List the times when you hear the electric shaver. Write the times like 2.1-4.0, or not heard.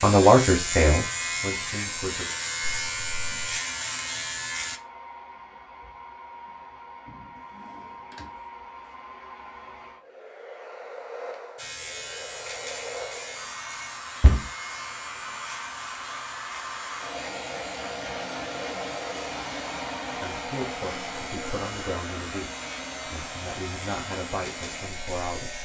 0.0-4.8, 11.6-25.6.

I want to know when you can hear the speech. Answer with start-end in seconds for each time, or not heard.
0.0-2.3, 20.2-22.5, 23.1-25.6.